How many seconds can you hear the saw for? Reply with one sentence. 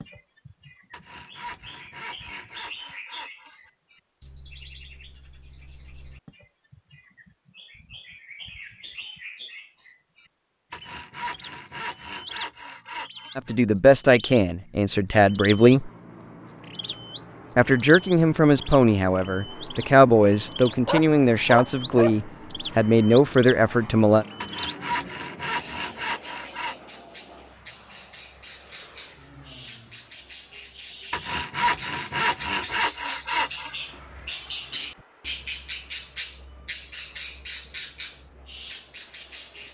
You can hear the saw for 11 seconds altogether.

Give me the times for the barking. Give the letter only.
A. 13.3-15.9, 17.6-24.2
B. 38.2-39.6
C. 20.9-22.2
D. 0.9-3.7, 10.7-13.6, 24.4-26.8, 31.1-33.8
C.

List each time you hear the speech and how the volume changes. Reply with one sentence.
The speech can be heard briefly from 13.3 to 15.9 s; and from 17.6 to 24.2 s, at a steady volume.